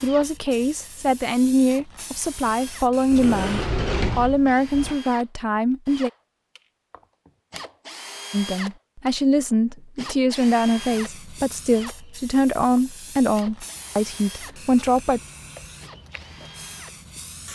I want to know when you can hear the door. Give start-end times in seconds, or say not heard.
3.1-5.0.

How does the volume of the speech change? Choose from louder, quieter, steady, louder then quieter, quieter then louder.
steady.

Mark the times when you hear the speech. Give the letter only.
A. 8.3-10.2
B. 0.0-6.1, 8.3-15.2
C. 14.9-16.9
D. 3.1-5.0
B.